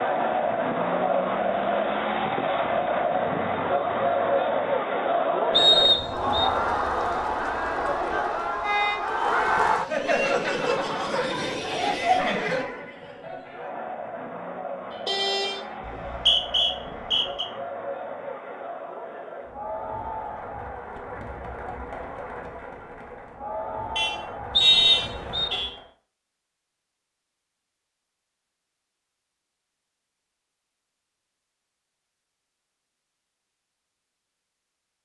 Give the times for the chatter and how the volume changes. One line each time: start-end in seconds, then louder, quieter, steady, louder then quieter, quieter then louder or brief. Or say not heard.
0.0-25.9 quieter.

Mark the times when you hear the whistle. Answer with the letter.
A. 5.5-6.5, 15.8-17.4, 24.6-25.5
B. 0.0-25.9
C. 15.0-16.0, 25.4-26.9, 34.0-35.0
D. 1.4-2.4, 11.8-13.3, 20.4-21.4
A.